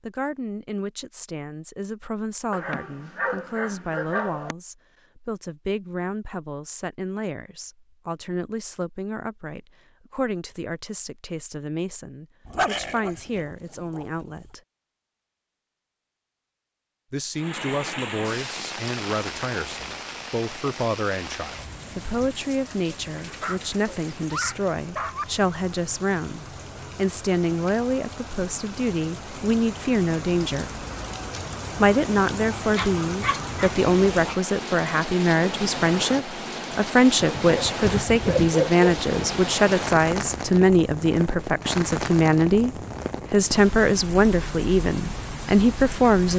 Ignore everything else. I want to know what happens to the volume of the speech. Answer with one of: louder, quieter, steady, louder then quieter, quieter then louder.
louder.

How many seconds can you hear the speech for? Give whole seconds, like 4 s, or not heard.
43 s.